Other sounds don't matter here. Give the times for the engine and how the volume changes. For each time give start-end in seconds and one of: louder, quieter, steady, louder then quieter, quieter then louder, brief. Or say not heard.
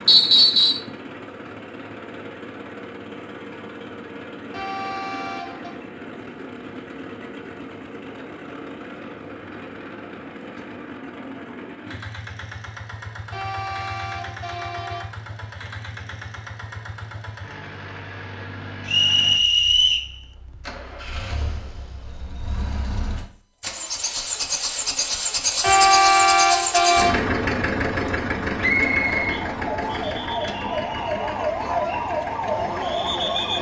0.0-33.5 louder.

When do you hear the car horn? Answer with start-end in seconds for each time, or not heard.
4.5-5.8, 13.3-15.1, 25.6-27.1.